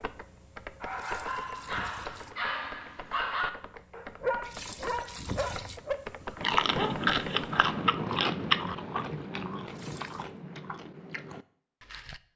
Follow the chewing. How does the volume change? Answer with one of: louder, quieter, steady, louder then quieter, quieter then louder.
quieter.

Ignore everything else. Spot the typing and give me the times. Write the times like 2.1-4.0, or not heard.
0.0-7.7.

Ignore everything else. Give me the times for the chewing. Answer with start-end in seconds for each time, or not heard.
6.3-12.2.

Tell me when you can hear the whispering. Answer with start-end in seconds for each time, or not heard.
not heard.